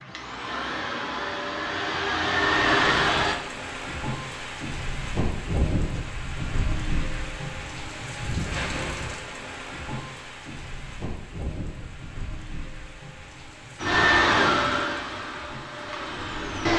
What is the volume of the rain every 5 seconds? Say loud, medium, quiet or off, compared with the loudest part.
loud, loud, medium, medium.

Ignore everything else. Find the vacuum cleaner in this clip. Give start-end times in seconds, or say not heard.
0.0-3.4, 13.8-16.7.